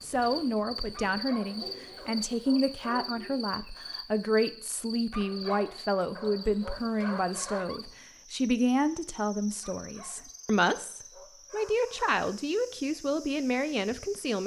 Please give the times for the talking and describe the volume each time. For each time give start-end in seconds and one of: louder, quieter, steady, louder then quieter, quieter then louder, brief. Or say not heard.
0.0-14.4 steady.